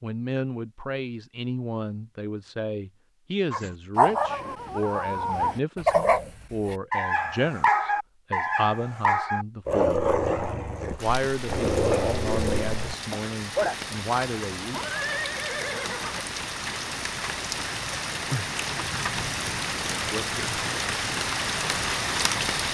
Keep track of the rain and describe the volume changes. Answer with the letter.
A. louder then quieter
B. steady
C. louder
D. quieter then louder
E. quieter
C.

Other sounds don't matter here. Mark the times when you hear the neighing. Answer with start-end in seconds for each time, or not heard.
14.7-16.2.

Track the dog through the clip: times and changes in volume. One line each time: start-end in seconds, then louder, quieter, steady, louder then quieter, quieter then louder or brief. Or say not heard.
3.5-13.8 steady.